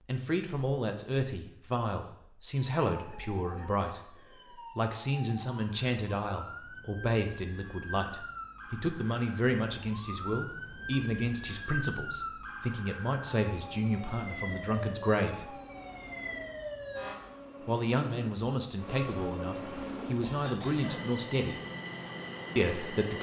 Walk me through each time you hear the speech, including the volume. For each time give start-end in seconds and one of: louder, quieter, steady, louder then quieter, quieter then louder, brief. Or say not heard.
0.1-15.6 steady
17.6-21.6 quieter then louder
22.6-23.1 brief.